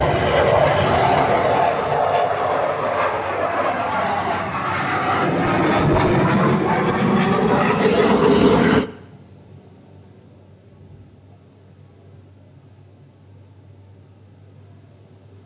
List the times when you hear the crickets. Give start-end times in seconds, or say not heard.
0.0-15.4.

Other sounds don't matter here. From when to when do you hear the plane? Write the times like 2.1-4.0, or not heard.
0.0-8.8.